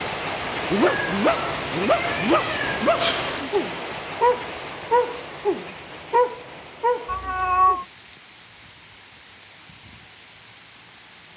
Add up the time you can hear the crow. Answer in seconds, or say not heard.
not heard.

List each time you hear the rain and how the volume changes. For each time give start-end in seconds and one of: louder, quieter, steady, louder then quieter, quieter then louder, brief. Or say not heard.
0.0-11.3 quieter.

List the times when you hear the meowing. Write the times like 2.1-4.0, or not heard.
0.8-3.5, 7.0-7.8.